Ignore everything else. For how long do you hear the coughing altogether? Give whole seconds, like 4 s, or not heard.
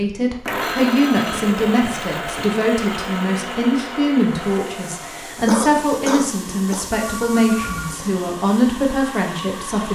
3 s.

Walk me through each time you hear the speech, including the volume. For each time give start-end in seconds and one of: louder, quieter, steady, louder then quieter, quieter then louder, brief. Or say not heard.
0.0-9.9 steady.